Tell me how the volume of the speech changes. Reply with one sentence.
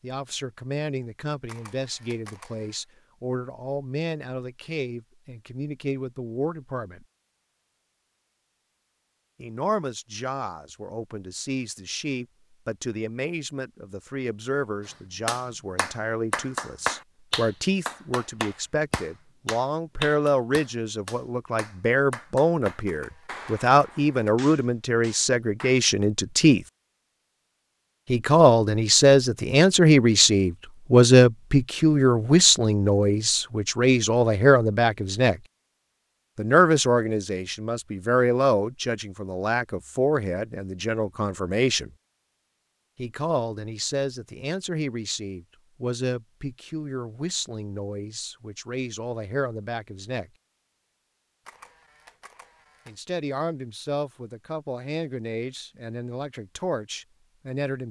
The volume of the speech goes up, then down.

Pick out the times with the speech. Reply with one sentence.
You can hear the speech from 0.0 to 7.0 s, from 9.4 to 26.6 s, from 28.1 to 35.4 s, from 36.4 to 41.9 s, from 43.0 to 50.3 s and from 52.9 to 57.8 s.